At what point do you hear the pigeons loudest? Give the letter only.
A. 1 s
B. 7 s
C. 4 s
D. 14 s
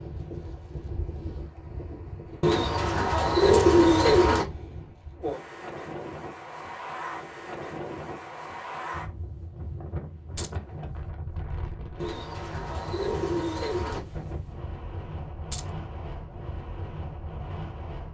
C.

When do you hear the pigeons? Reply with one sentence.
You can hear the pigeons from 2.4 to 4.5 s and from 11.9 to 14.0 s.